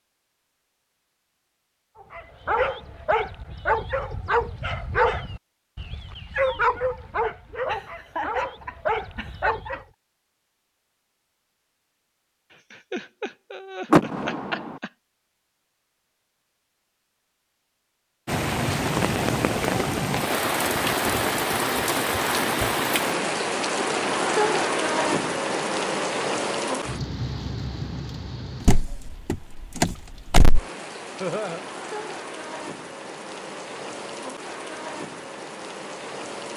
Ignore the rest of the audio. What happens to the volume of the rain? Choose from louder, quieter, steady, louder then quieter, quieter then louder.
quieter.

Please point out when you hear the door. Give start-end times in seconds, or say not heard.
13.9-14.7, 28.6-30.6.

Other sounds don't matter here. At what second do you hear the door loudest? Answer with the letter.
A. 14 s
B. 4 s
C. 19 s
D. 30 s
A.